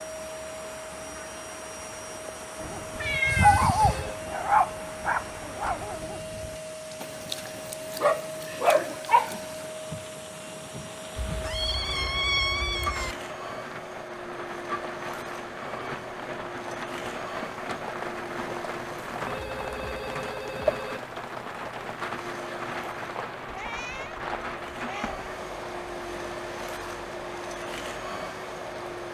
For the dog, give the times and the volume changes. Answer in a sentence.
You can hear the dog from 2.5 to 9.7 s, getting quieter then louder.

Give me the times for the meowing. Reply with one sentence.
The meowing can be heard from 3.0 to 4.1 s, from 11.2 to 13.2 s and from 23.4 to 25.2 s.